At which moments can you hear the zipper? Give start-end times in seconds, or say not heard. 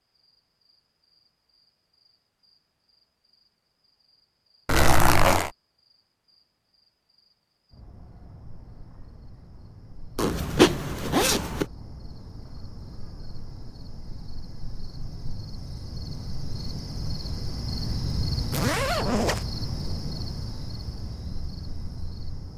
4.7-5.5, 10.2-11.7, 18.5-19.4.